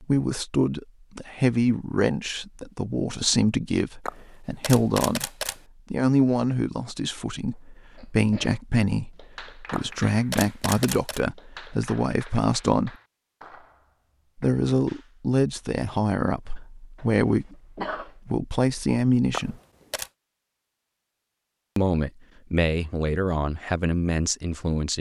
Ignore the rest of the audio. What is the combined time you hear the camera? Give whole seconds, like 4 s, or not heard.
4 s.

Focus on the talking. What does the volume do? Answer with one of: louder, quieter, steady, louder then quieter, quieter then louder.
steady.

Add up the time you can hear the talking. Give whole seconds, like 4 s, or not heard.
21 s.